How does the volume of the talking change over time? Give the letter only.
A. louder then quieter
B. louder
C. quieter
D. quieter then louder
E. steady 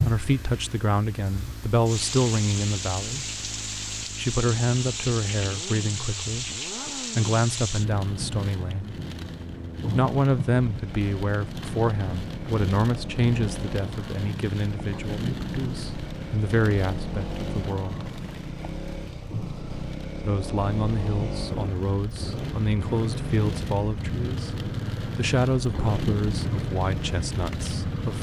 E.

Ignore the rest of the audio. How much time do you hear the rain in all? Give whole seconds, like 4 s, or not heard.
28 s.